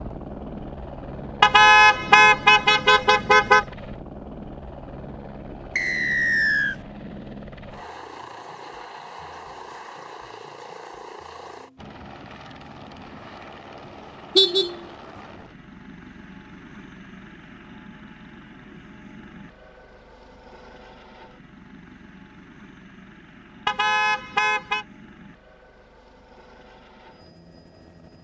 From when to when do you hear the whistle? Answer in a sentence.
You can hear the whistle from 5.8 to 6.8 s.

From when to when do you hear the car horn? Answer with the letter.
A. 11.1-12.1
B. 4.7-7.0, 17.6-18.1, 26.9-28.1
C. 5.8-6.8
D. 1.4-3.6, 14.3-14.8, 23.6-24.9
D.